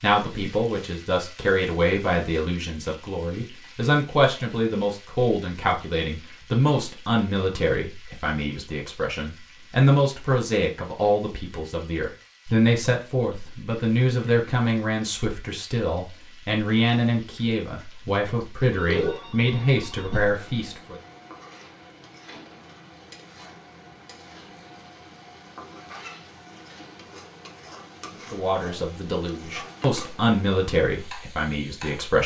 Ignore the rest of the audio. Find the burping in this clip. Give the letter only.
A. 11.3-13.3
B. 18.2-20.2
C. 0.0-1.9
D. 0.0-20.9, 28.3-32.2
B.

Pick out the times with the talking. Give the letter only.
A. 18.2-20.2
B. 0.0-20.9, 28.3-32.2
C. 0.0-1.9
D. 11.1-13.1
B.